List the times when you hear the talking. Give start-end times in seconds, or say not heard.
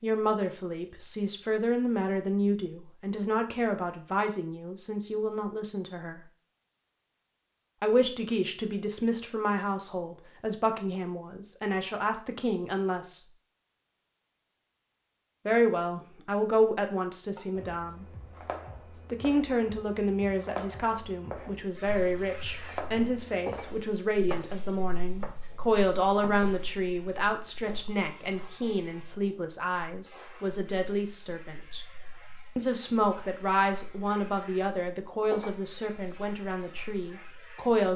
0.0-6.2, 7.8-13.2, 15.4-18.1, 18.9-31.9, 32.5-37.9.